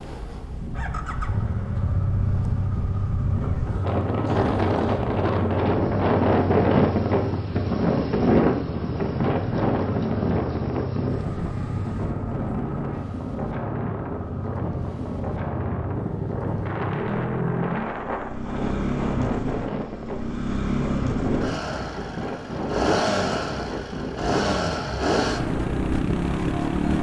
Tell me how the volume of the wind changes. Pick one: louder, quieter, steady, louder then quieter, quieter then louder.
louder then quieter.